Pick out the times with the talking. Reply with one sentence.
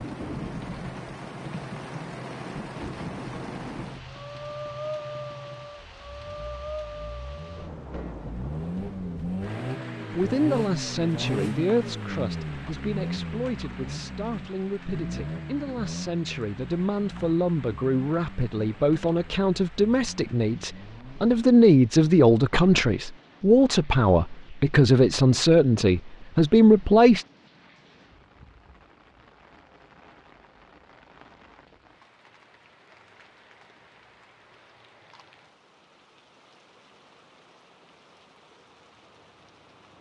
The talking can be heard from 10.2 to 27.2 s.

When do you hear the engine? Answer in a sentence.
You can hear the engine from 0.0 to 21.4 s.